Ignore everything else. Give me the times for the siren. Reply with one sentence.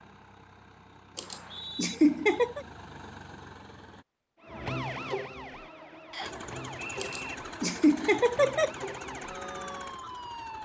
You can hear the siren from 4.4 to 10.6 s.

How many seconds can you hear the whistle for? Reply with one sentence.
The whistle can be heard for 2 seconds in total.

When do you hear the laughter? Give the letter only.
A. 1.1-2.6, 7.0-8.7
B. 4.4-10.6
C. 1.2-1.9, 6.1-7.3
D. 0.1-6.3
A.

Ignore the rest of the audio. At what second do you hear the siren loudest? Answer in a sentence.
The volume of the siren peaks at 5 seconds.